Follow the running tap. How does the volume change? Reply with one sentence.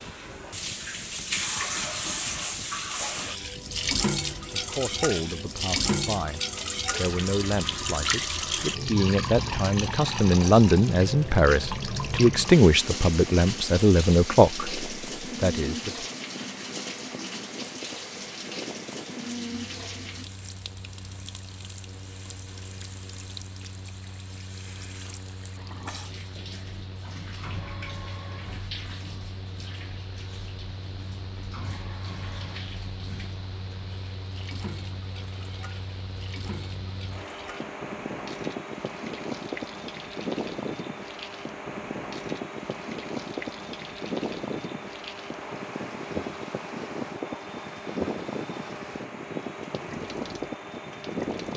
The volume of the running tap goes down.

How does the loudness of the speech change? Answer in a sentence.
The loudness of the speech goes up.